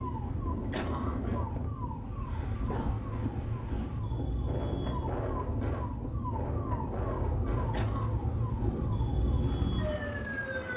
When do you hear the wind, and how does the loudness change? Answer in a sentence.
The wind can be heard from 0.0 to 10.7 s, at a steady volume.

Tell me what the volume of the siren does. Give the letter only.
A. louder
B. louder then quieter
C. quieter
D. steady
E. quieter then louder
A.